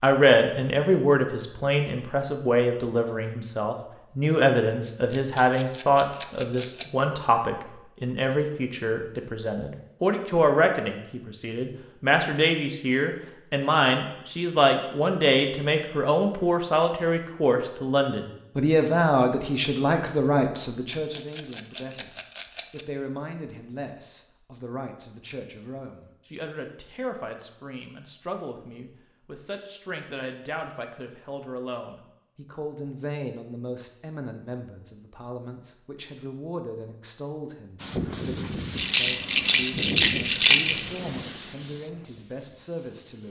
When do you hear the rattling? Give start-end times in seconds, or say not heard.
5.1-6.8, 20.9-22.9, 38.8-41.0.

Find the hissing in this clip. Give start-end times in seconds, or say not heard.
37.8-43.2.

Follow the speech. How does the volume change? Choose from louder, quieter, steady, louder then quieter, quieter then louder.
quieter.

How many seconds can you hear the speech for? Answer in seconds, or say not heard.
43 s.